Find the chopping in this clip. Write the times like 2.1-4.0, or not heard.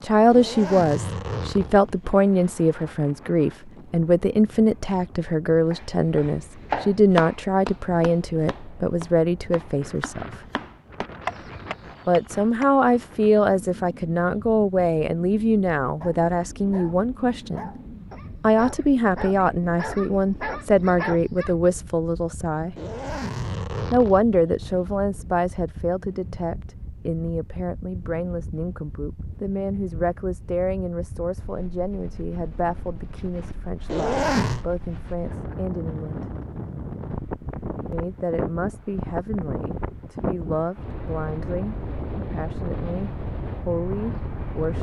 5.7-12.7.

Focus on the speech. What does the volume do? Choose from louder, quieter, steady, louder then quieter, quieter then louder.
quieter.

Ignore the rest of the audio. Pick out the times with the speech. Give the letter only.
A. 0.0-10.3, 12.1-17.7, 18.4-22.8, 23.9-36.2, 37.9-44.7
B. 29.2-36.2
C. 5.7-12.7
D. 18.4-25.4
A.